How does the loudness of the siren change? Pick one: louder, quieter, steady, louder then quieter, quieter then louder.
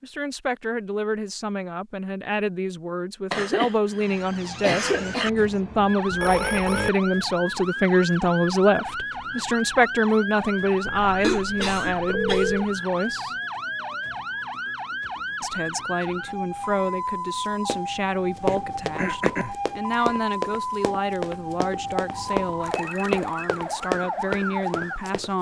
steady.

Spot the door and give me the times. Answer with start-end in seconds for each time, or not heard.
not heard.